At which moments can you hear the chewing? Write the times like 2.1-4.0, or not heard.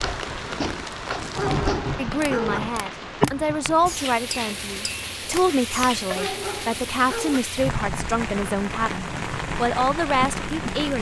not heard.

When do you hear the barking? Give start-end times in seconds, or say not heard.
1.4-2.6, 6.2-7.4.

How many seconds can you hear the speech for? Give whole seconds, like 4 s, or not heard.
9 s.